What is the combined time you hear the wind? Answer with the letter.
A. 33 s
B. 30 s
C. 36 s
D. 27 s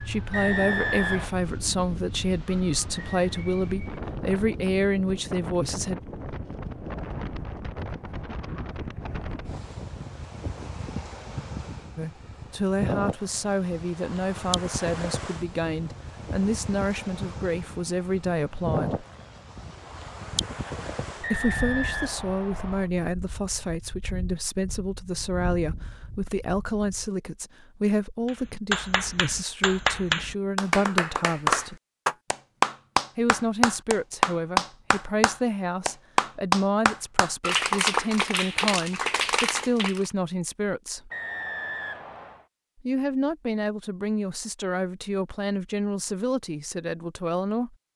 D.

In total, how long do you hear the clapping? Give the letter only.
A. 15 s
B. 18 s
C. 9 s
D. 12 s
D.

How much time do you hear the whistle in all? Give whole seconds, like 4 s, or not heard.
4 s.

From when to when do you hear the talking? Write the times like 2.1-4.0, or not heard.
0.0-6.0, 11.9-19.1, 21.2-31.8, 33.1-41.1, 42.8-47.8.